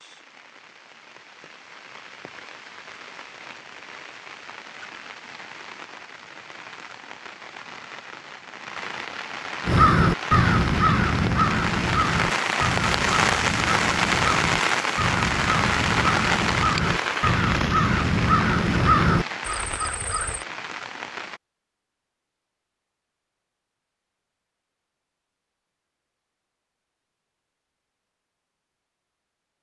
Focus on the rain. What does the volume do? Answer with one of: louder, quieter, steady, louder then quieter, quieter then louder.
louder then quieter.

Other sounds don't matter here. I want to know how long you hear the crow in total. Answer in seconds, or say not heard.
11 s.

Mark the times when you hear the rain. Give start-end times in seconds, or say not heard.
0.0-21.4.